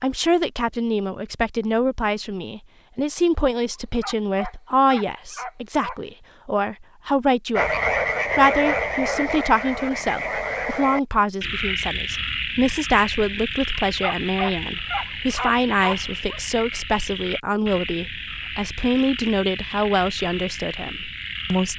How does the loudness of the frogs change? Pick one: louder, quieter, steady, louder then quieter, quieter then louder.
quieter.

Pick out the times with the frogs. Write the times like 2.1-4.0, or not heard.
7.5-21.7.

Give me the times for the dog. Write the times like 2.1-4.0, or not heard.
3.8-6.0, 13.8-16.4.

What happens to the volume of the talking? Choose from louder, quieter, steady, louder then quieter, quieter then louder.
steady.